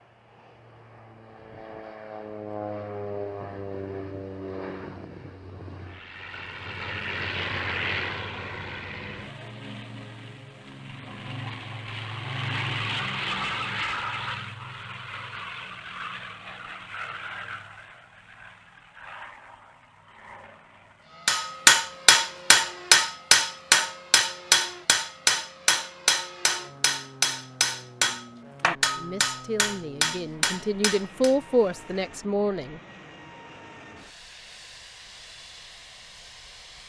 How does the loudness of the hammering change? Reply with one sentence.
The loudness of the hammering goes down.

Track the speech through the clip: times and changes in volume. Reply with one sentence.
You can hear the speech from 28.6 to 32.8 s, getting louder then quieter.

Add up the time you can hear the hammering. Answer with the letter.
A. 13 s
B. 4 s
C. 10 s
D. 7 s
C.